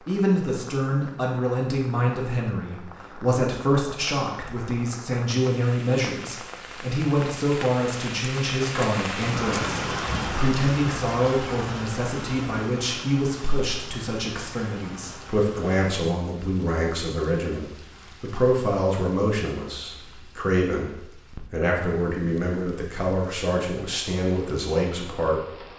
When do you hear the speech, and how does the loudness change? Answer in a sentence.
You can hear the speech from 0.1 to 25.6 s, at a steady volume.